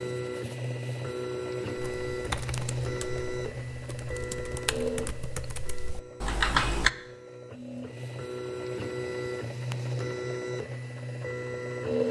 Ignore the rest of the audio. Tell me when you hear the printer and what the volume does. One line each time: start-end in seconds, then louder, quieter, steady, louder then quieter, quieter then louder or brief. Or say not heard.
0.0-12.0 quieter then louder.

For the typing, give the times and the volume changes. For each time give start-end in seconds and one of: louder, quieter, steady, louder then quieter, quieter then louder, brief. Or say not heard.
1.8-6.9 quieter then louder.